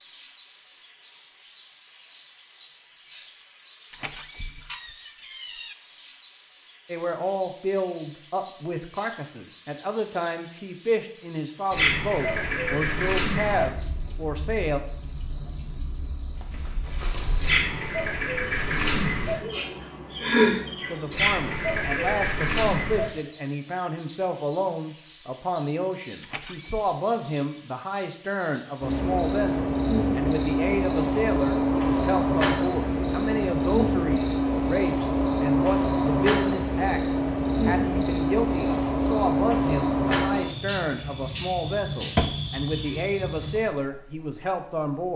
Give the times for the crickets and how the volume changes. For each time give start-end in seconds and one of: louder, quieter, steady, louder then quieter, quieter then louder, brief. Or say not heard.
0.0-45.1 steady.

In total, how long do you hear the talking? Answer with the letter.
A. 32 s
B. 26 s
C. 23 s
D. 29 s
A.